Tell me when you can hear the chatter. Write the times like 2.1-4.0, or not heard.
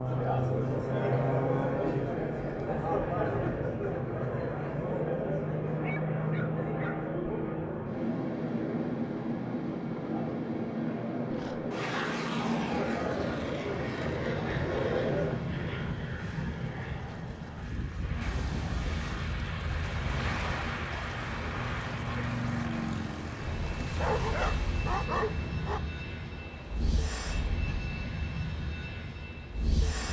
0.0-15.4.